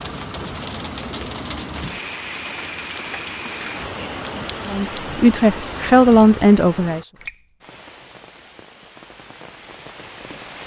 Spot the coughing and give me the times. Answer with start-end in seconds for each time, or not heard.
not heard.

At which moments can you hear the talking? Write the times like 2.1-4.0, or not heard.
4.7-7.0.